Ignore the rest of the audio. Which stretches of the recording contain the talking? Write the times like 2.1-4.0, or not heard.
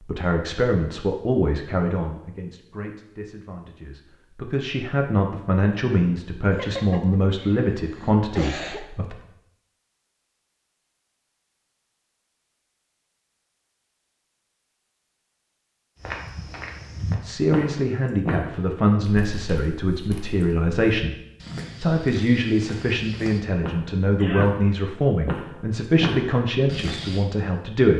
0.1-9.2, 17.2-21.1, 21.8-27.9.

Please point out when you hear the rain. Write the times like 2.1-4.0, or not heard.
not heard.